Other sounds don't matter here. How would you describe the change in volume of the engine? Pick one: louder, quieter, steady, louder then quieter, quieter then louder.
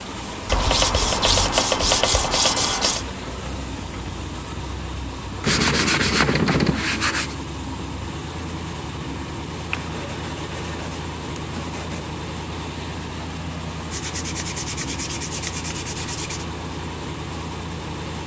steady.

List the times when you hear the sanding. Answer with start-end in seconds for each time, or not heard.
0.5-3.0, 5.4-7.3, 9.7-12.1, 13.9-16.4.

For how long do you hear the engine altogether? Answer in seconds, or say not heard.
18 s.